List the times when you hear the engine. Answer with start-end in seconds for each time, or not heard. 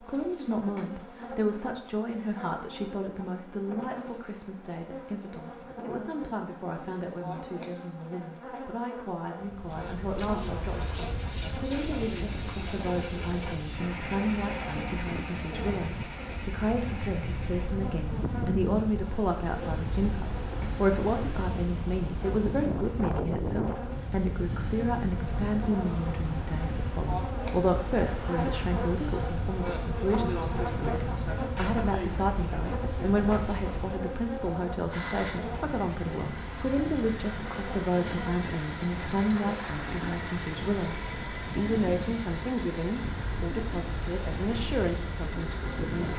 9.7-17.7, 34.9-46.1.